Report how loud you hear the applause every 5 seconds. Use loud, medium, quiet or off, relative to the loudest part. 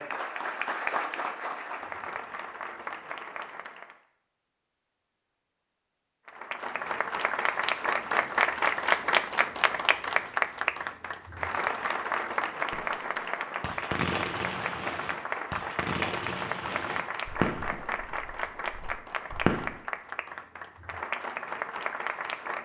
medium, loud, loud, medium, medium.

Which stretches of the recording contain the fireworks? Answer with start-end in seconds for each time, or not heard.
12.7-19.8.